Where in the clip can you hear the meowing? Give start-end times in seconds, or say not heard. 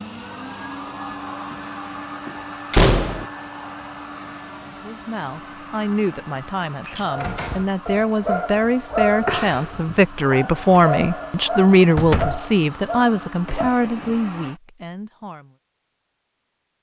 not heard.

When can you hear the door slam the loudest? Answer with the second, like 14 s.
3 s.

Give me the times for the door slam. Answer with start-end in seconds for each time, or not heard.
2.7-3.2, 6.8-7.7, 11.9-12.4.